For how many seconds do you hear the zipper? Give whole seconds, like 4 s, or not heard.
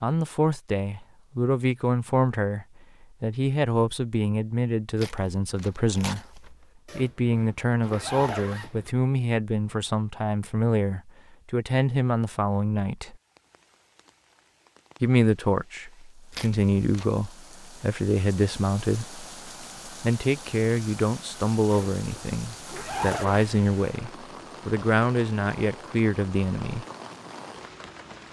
4 s.